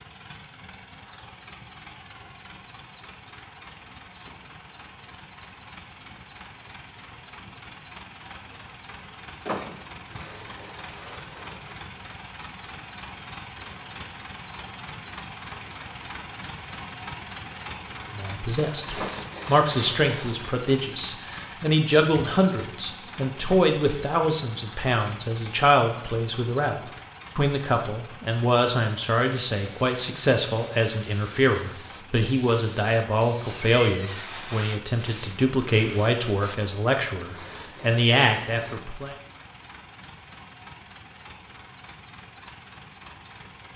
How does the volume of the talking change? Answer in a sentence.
The volume of the talking stays about the same.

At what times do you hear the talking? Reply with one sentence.
The talking can be heard from 18.1 to 39.1 s.